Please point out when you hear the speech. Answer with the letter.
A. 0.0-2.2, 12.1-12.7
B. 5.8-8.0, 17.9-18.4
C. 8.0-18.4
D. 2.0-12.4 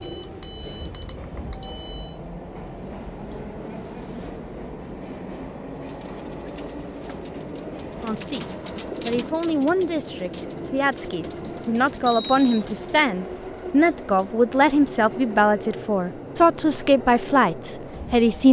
C.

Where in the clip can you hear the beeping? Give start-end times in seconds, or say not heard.
0.0-2.2, 12.1-12.7.